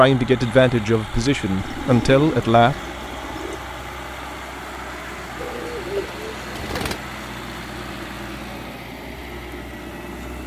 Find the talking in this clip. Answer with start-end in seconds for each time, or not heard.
0.0-2.8.